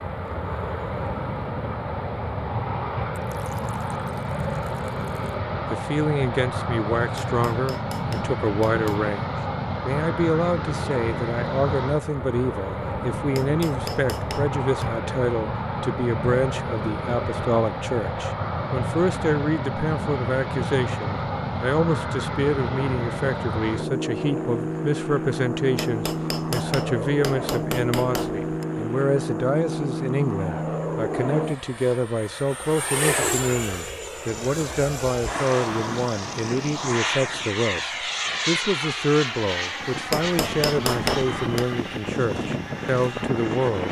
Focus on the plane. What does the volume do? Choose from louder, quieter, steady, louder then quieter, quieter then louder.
steady.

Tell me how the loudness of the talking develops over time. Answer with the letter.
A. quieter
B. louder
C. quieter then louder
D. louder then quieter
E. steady
E.